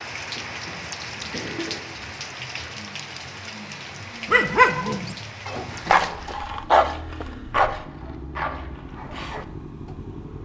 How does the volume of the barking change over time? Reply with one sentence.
The loudness of the barking goes up, then down.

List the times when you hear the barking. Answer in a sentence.
The barking can be heard from 4.2 to 9.4 s.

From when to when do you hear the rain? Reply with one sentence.
The rain can be heard from 0.0 to 6.3 s.